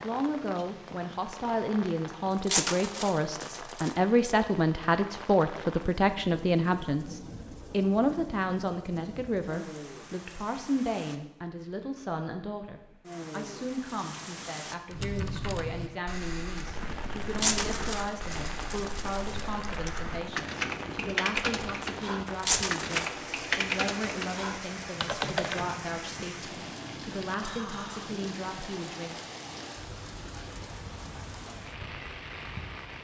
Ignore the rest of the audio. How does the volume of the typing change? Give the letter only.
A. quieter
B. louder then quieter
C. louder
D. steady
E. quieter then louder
C.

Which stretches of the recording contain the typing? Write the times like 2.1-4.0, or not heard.
14.9-25.7.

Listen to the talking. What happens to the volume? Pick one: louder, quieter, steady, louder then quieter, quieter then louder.
quieter.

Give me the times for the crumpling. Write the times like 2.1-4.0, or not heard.
2.5-4.0, 17.4-19.4, 22.4-23.4.